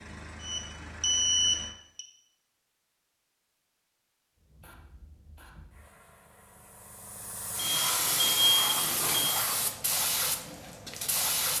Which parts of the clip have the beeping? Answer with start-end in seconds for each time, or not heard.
0.4-2.0, 7.5-9.3.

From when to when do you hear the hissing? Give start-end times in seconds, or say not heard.
4.5-11.5.